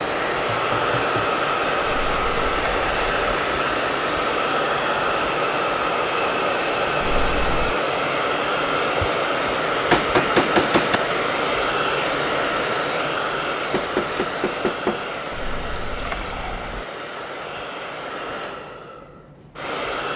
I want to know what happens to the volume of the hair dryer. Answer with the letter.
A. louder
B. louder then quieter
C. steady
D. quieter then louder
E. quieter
E.